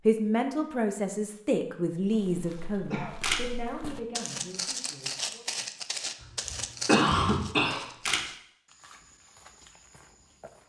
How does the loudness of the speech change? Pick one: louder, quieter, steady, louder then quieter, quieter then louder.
quieter.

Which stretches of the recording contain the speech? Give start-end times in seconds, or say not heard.
0.1-5.5.